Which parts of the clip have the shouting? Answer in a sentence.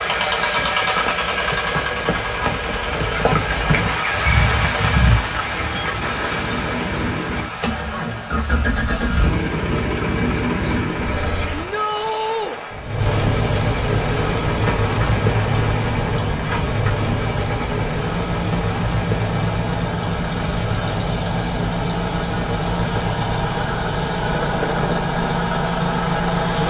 The shouting can be heard from 11.5 to 12.6 s.